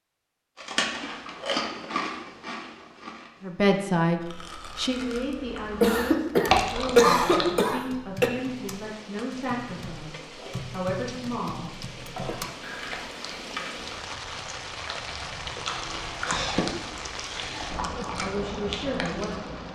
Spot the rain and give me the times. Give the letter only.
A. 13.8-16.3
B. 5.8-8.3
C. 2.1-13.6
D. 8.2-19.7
D.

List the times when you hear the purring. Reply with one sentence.
The purring can't be heard in this clip.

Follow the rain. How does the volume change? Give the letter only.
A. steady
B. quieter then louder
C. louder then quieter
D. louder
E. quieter
D.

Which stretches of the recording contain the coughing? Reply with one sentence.
You can hear the coughing from 5.8 to 8.3 s.